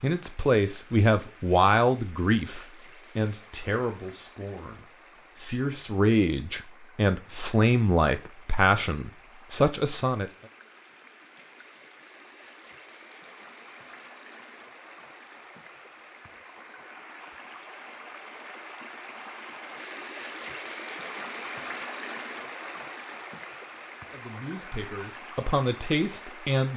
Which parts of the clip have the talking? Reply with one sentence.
The talking can be heard from 0.0 to 10.3 s and from 24.1 to 26.7 s.